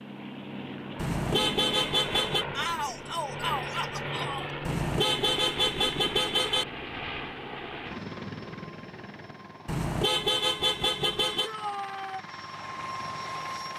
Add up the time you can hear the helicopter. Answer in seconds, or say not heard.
14 s.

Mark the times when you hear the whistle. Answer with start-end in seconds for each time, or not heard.
not heard.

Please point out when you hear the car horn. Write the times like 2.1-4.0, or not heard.
0.9-2.5, 4.7-6.7, 9.7-11.5.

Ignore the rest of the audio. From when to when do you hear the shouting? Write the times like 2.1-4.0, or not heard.
2.5-4.5, 11.4-12.2.